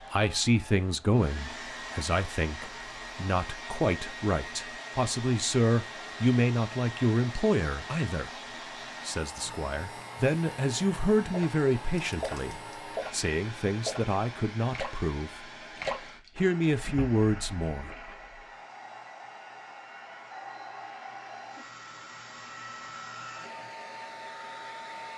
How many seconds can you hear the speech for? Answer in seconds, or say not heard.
16 s.